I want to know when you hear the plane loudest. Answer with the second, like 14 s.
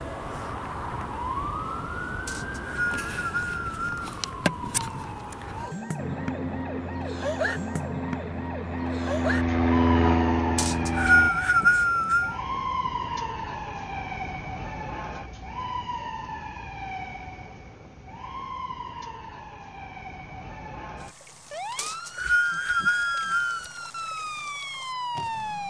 10 s.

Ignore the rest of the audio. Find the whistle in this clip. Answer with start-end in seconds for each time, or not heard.
2.2-4.1, 10.6-12.3, 21.8-23.6.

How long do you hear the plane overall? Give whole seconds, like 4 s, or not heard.
5 s.